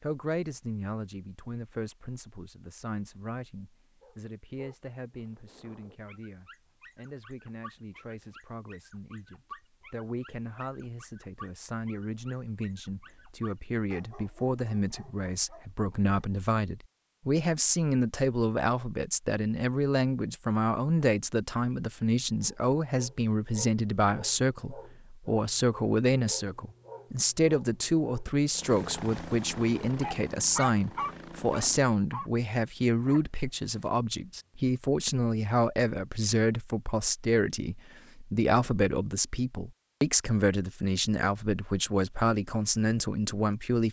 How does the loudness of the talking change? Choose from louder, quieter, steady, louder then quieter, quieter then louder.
louder.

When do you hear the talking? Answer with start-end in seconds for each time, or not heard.
0.0-43.8.